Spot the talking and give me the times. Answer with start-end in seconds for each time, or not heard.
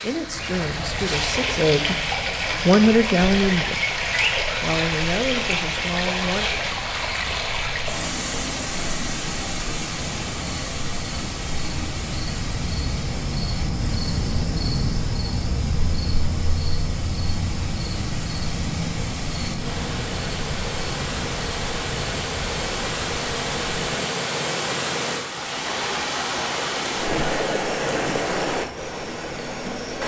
0.0-6.5.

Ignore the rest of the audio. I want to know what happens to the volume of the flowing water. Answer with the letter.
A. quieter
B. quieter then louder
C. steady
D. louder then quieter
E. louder
B.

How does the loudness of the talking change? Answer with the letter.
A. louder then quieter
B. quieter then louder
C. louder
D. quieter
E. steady
A.